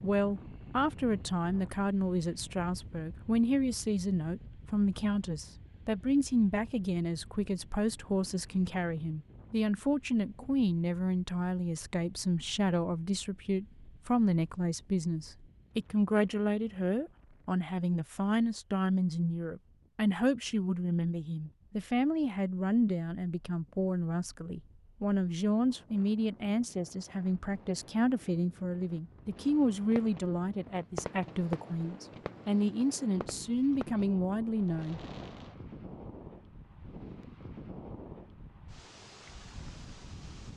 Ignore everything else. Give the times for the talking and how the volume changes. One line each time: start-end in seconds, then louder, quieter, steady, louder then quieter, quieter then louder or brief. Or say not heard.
0.0-35.0 steady.